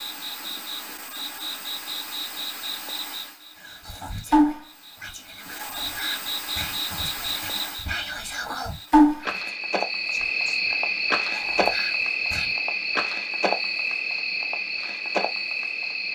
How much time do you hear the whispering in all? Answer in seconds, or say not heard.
9 s.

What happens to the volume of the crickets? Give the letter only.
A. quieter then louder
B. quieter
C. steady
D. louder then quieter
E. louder
E.